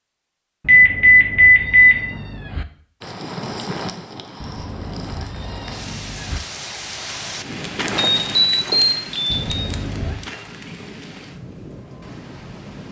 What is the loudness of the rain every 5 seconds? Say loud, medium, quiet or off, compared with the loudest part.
loud, loud, medium.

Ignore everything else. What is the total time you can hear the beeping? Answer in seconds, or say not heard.
3 s.